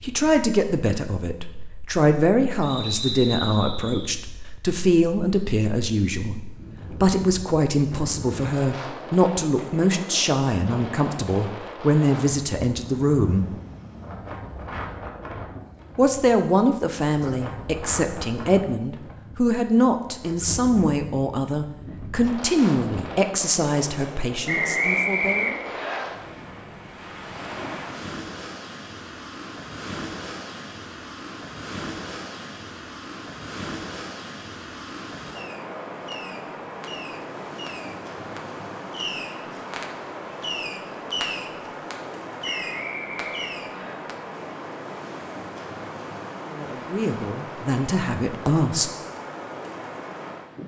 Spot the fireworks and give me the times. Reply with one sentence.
You can hear the fireworks from 35.4 to 44.1 s.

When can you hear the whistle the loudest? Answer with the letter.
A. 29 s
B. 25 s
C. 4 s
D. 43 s
B.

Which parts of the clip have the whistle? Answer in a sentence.
You can hear the whistle from 2.6 to 4.1 s, from 24.4 to 26.0 s and from 42.4 to 44.0 s.